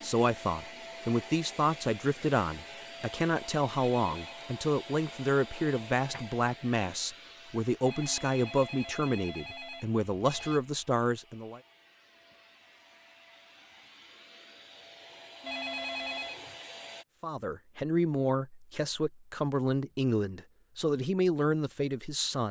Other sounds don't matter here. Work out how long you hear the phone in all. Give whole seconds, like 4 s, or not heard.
4 s.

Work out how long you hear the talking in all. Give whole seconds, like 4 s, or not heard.
17 s.